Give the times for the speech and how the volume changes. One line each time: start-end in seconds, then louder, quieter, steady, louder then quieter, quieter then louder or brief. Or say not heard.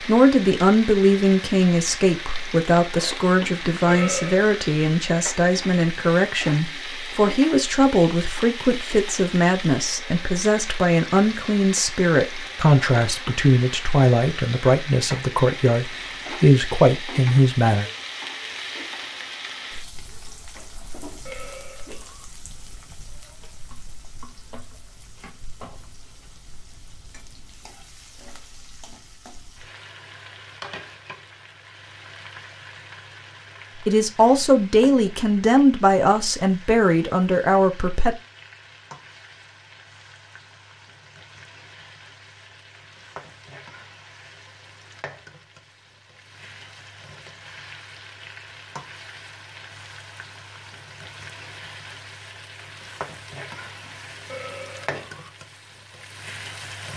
0.0-17.9 steady
33.9-38.1 steady.